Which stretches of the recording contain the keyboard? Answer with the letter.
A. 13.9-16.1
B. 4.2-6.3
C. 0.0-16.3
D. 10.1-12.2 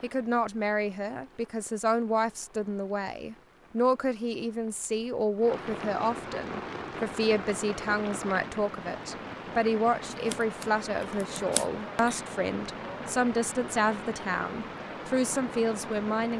D.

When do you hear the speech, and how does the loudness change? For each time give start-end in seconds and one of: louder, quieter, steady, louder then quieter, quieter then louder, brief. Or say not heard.
0.0-16.3 steady.